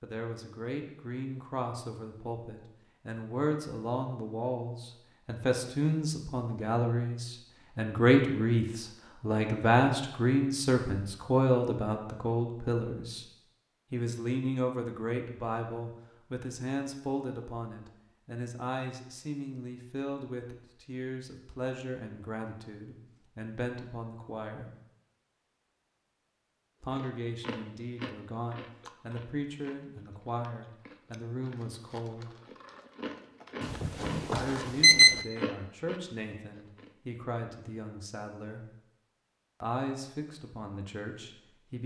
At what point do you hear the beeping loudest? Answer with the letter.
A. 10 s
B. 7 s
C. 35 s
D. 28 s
C.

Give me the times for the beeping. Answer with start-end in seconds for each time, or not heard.
33.6-35.1.